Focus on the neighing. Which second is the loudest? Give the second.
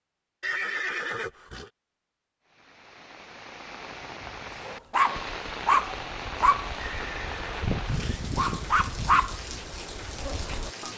1 s.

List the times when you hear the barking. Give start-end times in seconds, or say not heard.
4.7-10.9.